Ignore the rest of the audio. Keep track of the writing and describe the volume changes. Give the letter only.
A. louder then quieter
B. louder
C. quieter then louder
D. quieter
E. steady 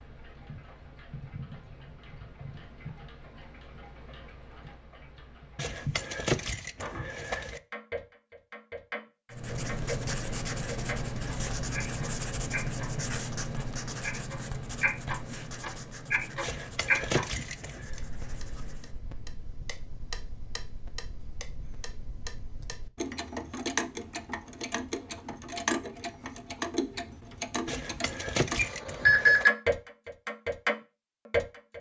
D.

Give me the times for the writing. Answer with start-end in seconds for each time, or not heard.
9.3-19.0.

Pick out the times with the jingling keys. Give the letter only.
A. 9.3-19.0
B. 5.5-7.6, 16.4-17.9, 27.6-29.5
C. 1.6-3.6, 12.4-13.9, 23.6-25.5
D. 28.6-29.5
B.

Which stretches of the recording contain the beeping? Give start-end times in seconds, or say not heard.
28.6-29.5.